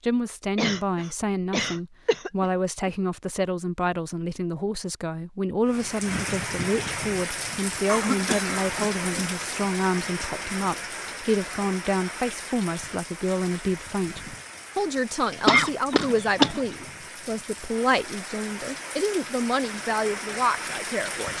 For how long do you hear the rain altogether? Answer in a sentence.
The rain can be heard for 16 seconds in total.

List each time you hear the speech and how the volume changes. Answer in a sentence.
The speech can be heard from 0.0 to 21.3 s, at a steady volume.